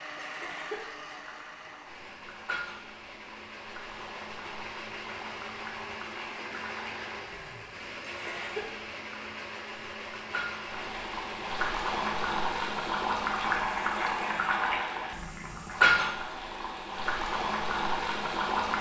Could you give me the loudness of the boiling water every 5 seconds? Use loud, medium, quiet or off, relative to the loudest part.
quiet, quiet, loud, loud.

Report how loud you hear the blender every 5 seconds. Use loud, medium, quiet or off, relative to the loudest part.
loud, loud, loud, off.